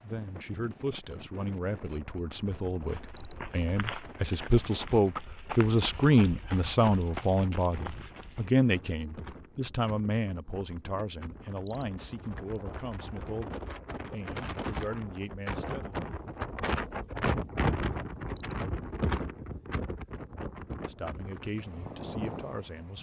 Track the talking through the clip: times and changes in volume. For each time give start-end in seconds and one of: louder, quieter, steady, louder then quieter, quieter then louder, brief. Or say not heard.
0.0-16.0 louder then quieter
20.9-22.9 brief.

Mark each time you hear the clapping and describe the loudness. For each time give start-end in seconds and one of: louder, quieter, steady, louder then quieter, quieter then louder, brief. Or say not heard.
not heard.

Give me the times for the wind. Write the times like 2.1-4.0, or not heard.
0.0-22.9.